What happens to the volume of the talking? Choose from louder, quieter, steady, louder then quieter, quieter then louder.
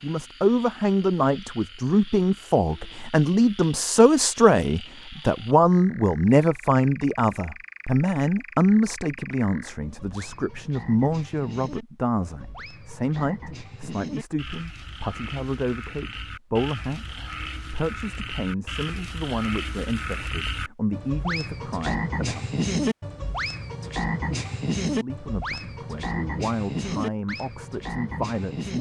quieter.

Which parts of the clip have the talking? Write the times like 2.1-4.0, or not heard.
0.0-22.5, 24.9-28.7.